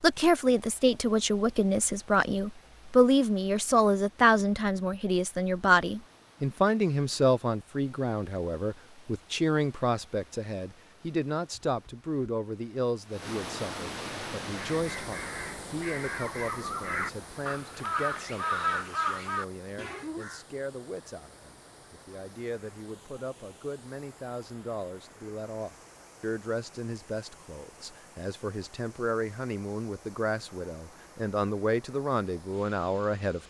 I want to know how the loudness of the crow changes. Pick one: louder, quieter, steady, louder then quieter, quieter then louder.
louder.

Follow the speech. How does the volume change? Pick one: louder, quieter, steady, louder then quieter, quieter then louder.
quieter then louder.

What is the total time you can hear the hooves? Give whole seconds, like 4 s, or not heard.
not heard.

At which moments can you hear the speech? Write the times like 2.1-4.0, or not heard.
0.0-33.4.